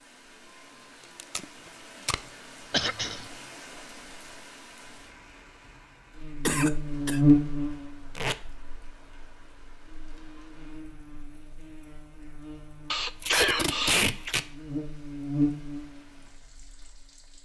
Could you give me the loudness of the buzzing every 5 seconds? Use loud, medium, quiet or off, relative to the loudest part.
off, loud, quiet, medium.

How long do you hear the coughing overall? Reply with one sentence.
The coughing can be heard for 3 seconds in total.